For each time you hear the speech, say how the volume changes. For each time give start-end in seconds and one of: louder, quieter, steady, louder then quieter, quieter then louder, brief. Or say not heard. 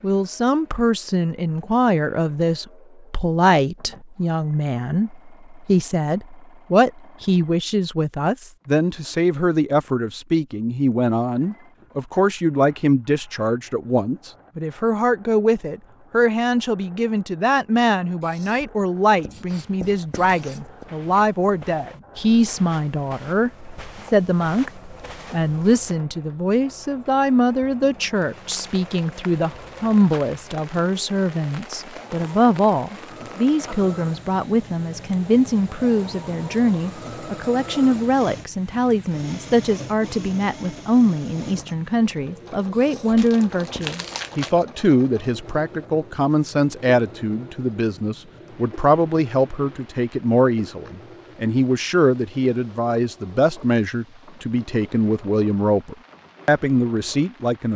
0.0-57.7 steady.